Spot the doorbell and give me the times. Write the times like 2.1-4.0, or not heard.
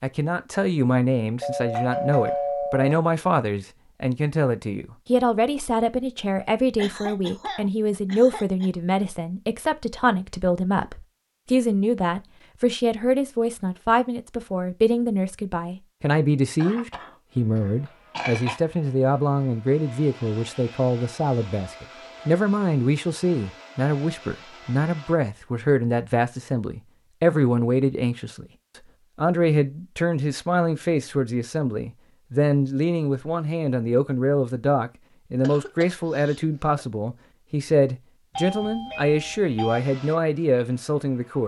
1.4-3.0, 38.4-39.8.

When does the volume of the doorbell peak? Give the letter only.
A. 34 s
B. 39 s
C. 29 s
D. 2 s
D.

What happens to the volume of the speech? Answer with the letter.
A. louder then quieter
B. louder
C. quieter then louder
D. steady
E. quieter
D.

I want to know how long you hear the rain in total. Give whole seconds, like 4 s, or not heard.
not heard.